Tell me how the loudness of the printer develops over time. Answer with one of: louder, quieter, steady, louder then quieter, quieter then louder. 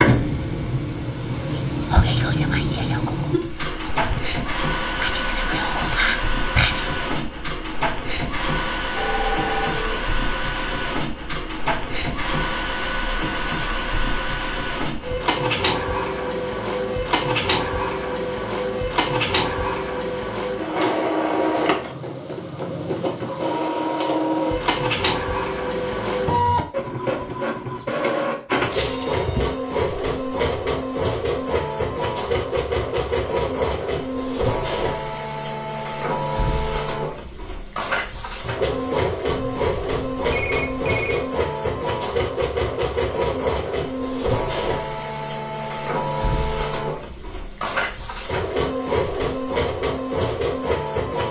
steady.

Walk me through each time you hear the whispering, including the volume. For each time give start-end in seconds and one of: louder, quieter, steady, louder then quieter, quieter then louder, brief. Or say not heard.
1.6-7.0 quieter then louder.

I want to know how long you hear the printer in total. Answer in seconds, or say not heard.
51 s.